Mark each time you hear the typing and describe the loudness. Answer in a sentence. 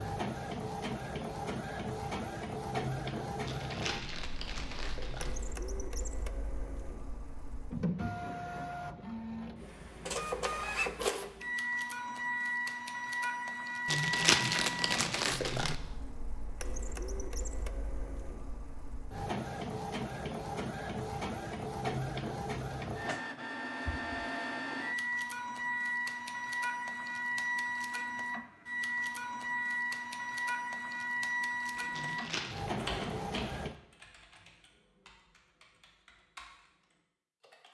The typing can be heard from 31.8 to 37.6 s, getting quieter then louder.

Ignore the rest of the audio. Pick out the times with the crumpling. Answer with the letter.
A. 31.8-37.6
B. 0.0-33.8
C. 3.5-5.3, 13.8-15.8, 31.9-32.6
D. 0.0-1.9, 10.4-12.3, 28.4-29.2
C.